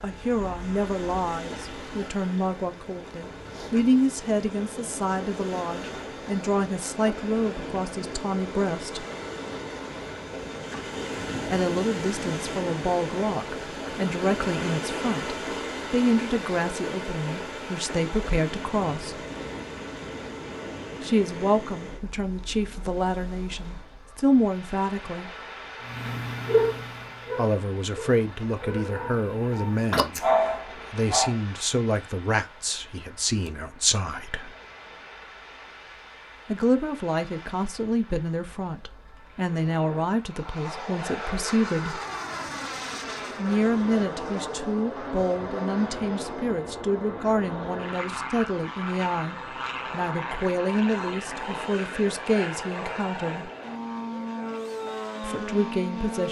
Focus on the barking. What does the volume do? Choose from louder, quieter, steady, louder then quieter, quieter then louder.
quieter then louder.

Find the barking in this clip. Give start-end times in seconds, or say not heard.
25.8-31.4.